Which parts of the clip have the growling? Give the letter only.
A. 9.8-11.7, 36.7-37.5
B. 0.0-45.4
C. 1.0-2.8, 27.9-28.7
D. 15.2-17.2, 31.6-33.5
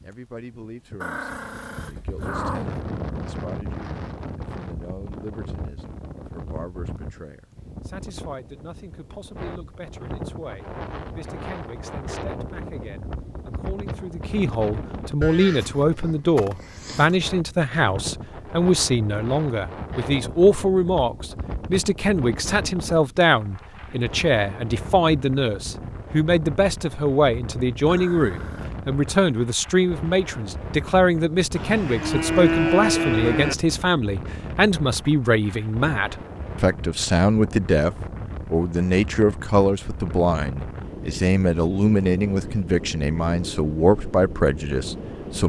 C.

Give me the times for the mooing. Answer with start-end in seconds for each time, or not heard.
15.2-17.2, 31.6-33.5.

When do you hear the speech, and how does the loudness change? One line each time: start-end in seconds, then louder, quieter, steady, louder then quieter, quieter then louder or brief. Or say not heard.
0.0-45.4 louder.